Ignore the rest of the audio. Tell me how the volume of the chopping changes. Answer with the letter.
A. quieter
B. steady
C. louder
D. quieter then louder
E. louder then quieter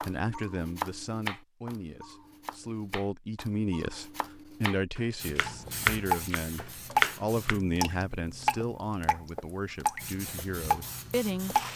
D.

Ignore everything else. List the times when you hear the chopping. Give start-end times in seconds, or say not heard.
0.0-7.5.